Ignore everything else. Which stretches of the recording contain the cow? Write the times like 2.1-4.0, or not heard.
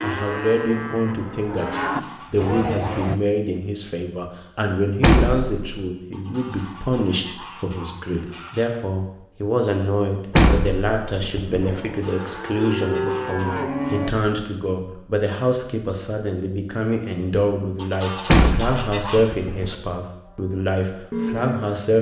0.0-3.2, 11.6-14.2, 20.2-21.6.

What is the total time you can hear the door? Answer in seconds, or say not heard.
4 s.